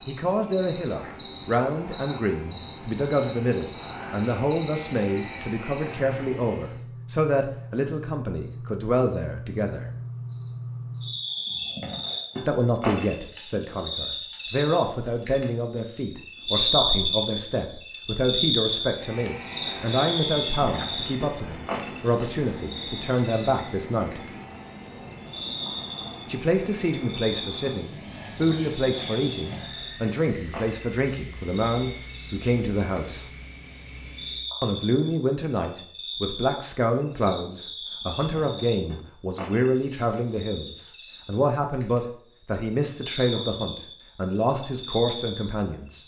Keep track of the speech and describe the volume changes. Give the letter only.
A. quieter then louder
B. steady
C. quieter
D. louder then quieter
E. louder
B.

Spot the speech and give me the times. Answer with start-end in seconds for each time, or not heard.
0.1-9.8, 12.4-24.2, 26.2-33.2, 34.6-46.0.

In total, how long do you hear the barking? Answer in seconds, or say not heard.
not heard.